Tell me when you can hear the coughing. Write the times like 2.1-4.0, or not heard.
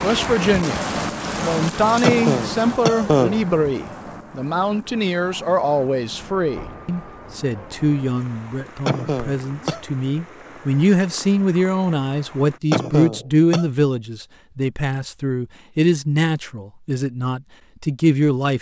2.0-3.4, 8.8-9.8, 12.7-13.7.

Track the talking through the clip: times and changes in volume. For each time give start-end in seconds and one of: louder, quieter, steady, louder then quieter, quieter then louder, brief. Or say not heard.
0.0-18.5 steady.